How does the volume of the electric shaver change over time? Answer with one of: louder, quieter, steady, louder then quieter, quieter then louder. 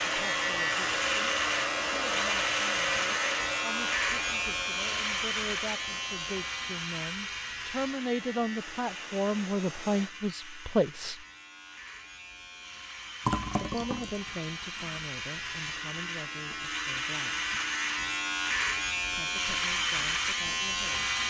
quieter then louder.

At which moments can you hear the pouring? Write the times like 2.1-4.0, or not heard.
13.2-15.0.